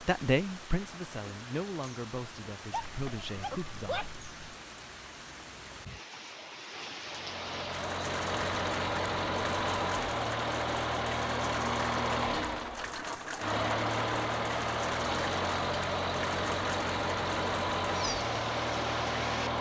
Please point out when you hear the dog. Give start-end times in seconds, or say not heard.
2.7-4.5.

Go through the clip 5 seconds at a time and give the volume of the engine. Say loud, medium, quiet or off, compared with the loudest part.
off, loud, loud, loud.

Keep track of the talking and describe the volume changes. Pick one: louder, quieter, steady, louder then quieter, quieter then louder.
quieter then louder.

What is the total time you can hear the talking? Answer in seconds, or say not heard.
4 s.